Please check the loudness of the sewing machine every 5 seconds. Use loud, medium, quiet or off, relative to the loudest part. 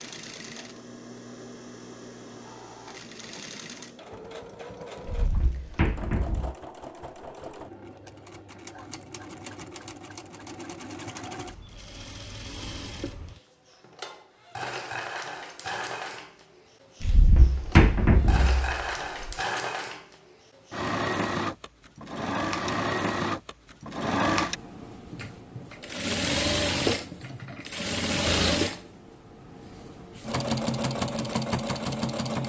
quiet, quiet, medium, medium, loud, loud, loud.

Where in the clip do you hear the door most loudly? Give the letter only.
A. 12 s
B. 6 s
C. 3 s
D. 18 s
D.